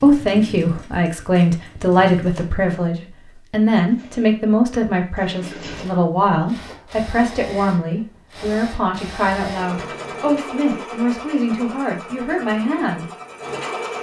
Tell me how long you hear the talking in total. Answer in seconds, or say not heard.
13 s.